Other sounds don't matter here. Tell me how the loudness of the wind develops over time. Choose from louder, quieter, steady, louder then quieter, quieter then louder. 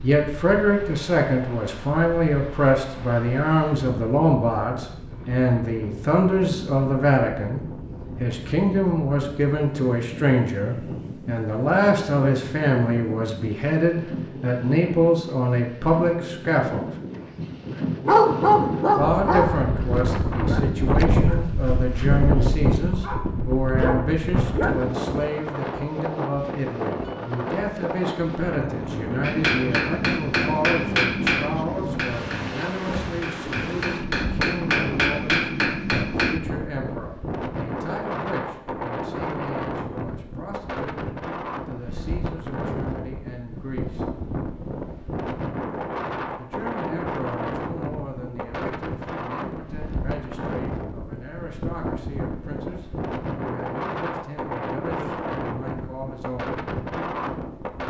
louder.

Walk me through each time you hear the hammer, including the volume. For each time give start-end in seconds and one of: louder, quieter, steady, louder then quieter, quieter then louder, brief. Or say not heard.
29.2-36.4 quieter then louder.